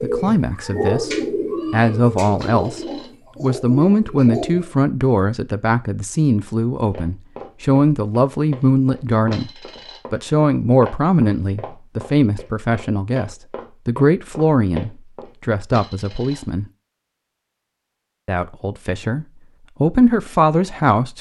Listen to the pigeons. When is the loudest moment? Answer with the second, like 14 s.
1 s.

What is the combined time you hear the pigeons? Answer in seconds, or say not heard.
5 s.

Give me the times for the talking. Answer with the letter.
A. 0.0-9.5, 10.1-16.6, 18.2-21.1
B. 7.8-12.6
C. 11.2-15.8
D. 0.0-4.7
A.